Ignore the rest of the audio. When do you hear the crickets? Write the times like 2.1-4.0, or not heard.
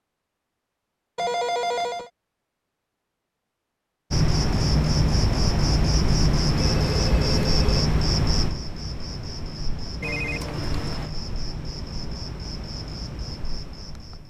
4.1-14.2.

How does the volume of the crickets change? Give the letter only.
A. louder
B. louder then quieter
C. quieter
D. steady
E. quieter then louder
C.